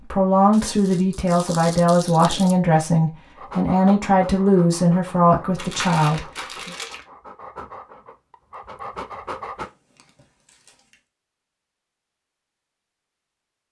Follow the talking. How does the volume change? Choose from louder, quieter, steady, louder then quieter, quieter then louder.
steady.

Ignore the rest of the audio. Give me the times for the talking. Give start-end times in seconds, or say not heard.
0.0-6.7.